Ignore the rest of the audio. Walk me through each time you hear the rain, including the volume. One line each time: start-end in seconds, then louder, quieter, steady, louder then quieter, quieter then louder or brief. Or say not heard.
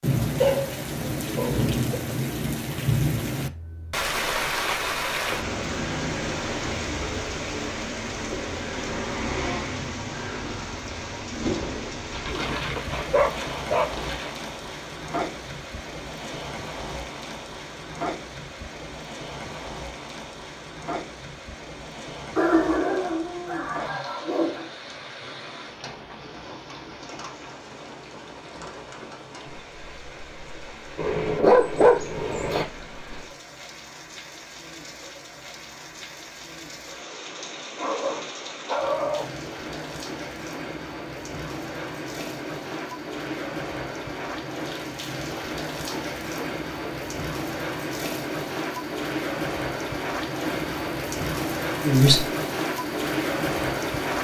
0.0-54.1 quieter then louder.